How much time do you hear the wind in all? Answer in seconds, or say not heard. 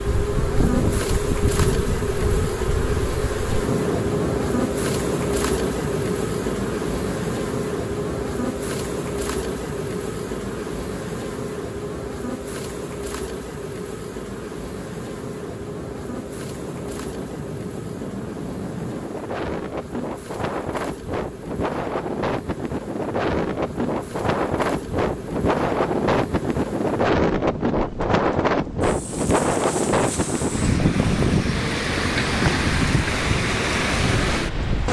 35 s.